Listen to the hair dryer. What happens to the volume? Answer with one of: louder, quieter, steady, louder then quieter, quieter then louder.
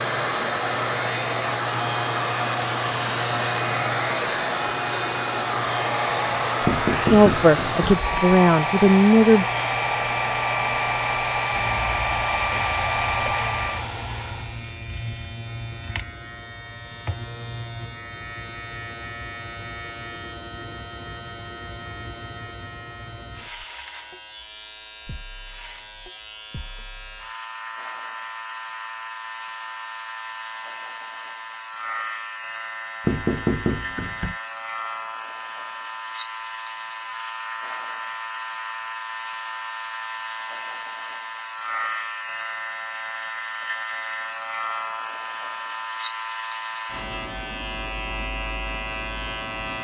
steady.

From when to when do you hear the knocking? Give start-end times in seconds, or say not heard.
6.7-8.2, 33.0-34.4.